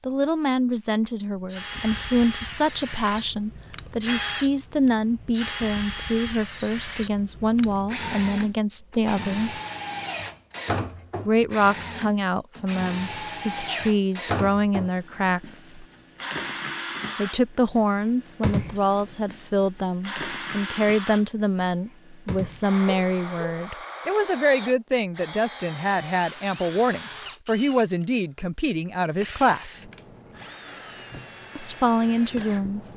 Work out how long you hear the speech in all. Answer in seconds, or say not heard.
28 s.